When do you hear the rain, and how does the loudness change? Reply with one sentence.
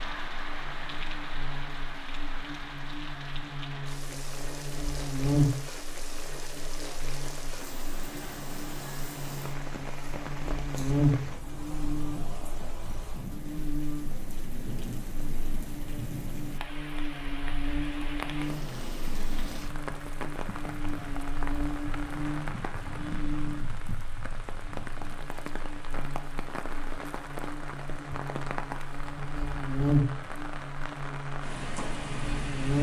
The rain can be heard from 0.0 to 32.7 s, at a steady volume.